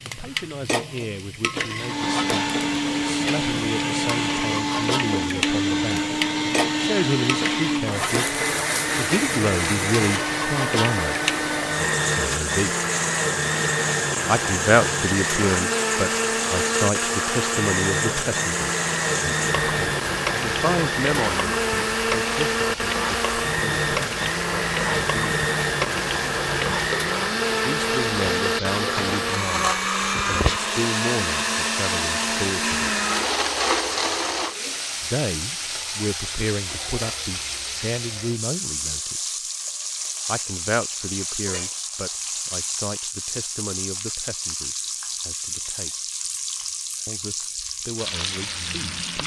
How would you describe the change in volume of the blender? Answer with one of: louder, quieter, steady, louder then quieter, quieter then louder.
steady.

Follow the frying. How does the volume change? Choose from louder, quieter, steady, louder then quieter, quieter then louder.
steady.